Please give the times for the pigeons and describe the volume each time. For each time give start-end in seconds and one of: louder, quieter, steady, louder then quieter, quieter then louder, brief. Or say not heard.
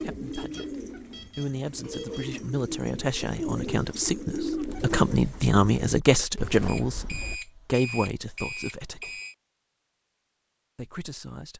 0.0-7.4 louder then quieter.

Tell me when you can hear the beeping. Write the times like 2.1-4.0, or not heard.
0.3-2.3, 6.7-9.3.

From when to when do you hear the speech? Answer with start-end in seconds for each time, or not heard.
0.0-9.2, 10.8-11.5.